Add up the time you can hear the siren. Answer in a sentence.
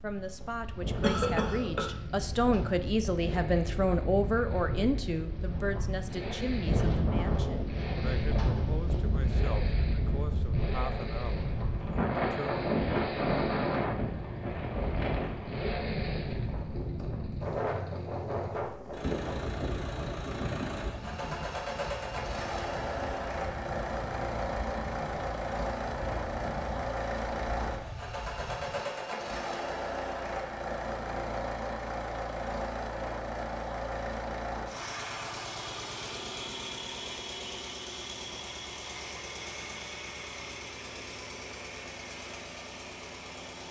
You can't hear the siren here.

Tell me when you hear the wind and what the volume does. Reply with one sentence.
You can hear the wind from 0.0 to 28.9 s, getting louder then quieter.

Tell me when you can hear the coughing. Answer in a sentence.
The coughing can be heard from 1.0 to 1.9 s.